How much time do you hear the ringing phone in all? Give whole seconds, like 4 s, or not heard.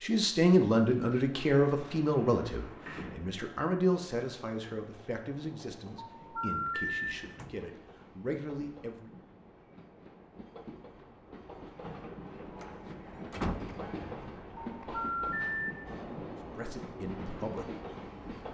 2 s.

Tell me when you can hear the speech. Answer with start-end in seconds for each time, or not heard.
0.0-9.1, 16.5-17.7.